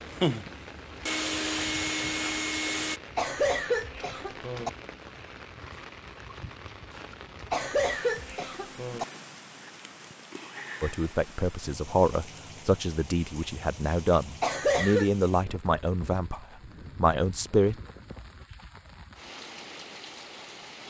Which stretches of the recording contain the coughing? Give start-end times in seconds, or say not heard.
3.1-4.7, 7.5-9.1, 14.4-15.1.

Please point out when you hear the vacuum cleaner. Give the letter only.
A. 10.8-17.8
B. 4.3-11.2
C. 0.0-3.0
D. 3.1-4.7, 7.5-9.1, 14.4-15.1
C.